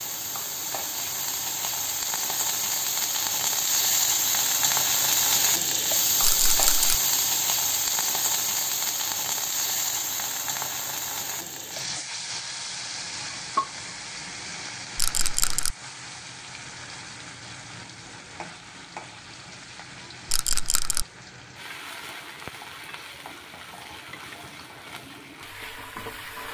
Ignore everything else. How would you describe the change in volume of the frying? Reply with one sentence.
The volume of the frying goes down.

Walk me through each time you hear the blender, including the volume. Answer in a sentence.
You can't hear the blender here.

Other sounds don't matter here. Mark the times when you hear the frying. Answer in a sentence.
The frying can be heard from 0.0 to 26.4 s.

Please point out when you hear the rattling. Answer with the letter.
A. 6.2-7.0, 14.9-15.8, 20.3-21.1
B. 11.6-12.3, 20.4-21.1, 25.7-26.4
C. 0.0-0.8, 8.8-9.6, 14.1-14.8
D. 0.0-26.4
A.